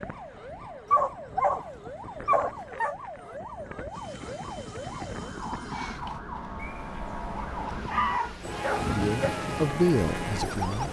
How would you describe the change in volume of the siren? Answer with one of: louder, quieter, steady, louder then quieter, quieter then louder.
louder.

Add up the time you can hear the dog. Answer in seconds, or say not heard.
5 s.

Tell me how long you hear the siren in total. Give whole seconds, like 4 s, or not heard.
11 s.